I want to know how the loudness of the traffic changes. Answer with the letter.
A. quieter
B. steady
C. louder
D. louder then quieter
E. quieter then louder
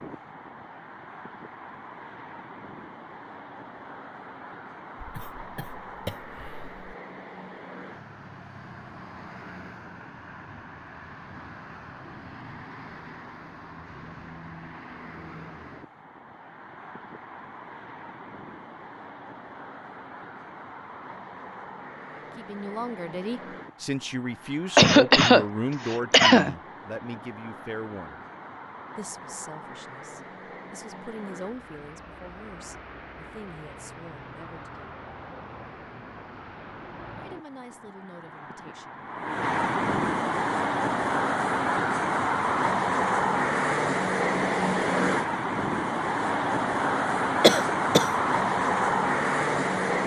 C.